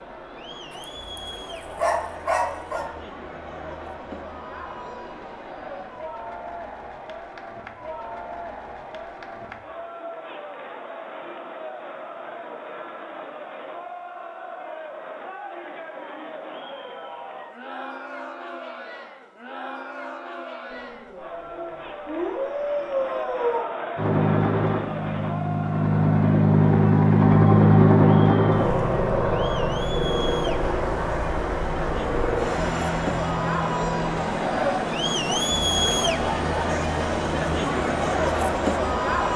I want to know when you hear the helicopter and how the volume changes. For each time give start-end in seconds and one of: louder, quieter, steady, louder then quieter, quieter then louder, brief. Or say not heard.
23.9-39.3 quieter.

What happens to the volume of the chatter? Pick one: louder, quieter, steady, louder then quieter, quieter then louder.
louder.